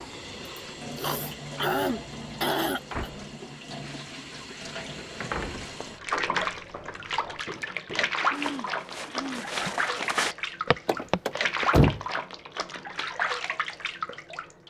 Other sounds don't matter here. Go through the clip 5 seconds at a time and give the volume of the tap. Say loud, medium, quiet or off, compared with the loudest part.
medium, loud, loud.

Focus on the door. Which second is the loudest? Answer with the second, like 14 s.
12 s.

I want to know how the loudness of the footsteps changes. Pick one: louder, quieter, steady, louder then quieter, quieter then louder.
louder.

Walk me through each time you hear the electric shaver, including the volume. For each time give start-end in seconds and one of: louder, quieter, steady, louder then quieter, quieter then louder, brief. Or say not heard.
not heard.